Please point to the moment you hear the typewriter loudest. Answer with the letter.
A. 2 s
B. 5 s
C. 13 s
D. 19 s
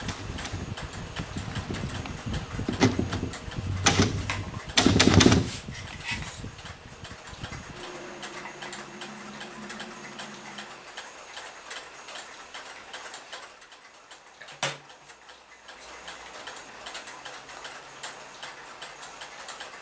B.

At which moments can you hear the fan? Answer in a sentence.
The fan can be heard from 0.0 to 11.0 s.